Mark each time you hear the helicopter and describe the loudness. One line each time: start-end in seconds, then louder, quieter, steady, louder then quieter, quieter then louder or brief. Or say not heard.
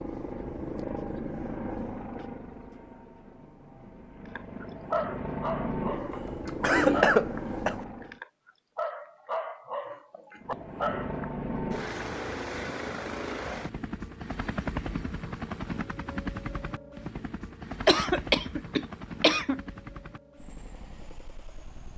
0.0-8.2 quieter then louder
10.4-21.9 quieter.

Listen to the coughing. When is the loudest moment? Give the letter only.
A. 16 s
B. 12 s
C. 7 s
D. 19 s
C.